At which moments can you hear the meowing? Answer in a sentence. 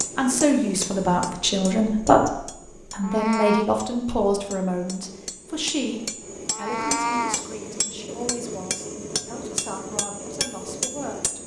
The meowing can be heard from 3.0 to 3.6 s and from 6.5 to 7.5 s.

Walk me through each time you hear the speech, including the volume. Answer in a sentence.
The speech can be heard from 0.1 to 11.4 s, getting quieter.